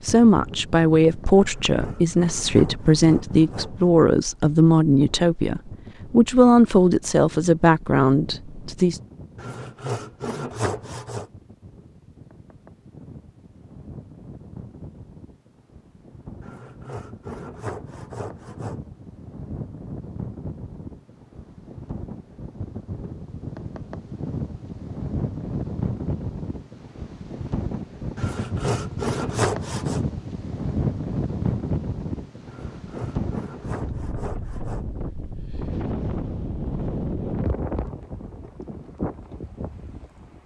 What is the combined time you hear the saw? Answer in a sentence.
You can hear the saw for 11 seconds altogether.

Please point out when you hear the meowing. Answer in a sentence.
The meowing can't be heard in this clip.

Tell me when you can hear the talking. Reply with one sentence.
The talking can be heard from 0.0 to 9.0 s.